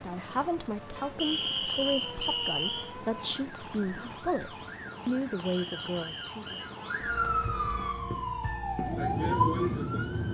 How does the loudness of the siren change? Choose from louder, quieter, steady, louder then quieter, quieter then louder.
louder.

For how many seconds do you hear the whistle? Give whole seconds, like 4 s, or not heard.
3 s.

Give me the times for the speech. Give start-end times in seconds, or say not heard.
0.0-6.6.